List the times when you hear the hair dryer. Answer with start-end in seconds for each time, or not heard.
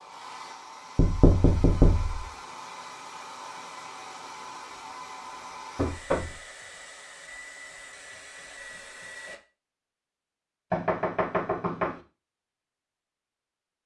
0.0-9.4.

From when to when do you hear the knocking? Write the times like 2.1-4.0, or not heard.
0.9-2.3, 5.8-6.4, 10.7-12.0.